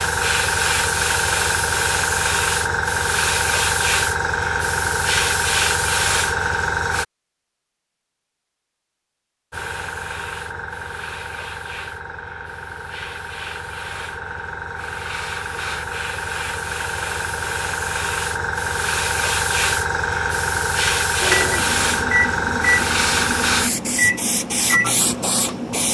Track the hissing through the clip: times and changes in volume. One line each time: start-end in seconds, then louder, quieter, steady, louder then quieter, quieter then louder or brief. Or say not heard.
0.0-7.0 steady
9.5-25.8 louder.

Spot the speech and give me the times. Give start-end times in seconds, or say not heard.
not heard.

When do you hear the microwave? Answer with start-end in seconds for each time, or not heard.
21.2-25.8.